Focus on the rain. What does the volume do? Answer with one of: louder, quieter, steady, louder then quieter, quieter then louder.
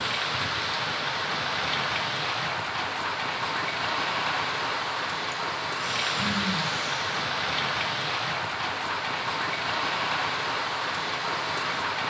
steady.